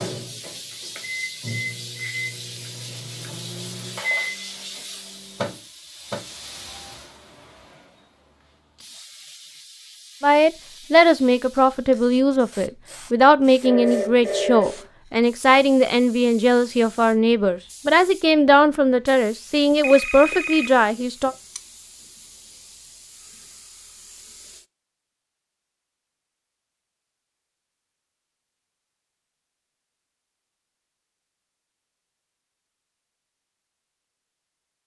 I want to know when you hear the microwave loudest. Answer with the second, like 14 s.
4 s.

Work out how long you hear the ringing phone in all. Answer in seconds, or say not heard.
3 s.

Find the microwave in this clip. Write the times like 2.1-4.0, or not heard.
0.0-6.2.